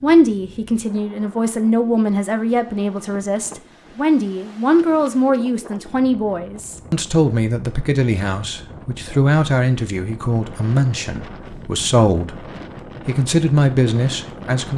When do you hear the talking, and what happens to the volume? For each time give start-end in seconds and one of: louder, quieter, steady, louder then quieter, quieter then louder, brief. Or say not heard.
0.0-14.7 steady.